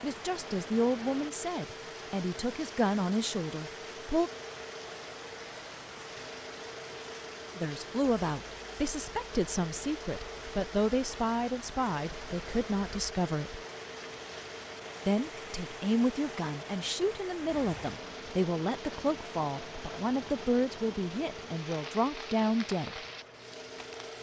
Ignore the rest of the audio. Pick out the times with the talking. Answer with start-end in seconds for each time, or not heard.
0.0-4.3, 7.5-13.6, 15.1-23.0.